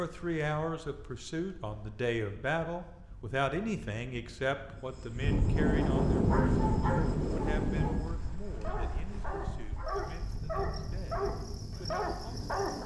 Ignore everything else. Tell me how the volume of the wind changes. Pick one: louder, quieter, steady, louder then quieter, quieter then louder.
louder then quieter.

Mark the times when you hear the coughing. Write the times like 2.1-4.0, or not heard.
not heard.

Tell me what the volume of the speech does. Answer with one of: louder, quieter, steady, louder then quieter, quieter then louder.
quieter.